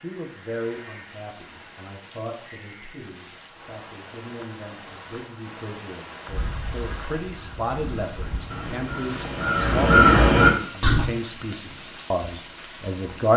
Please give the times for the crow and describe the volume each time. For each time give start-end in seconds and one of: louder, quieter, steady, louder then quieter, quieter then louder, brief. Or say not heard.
6.2-11.1 louder.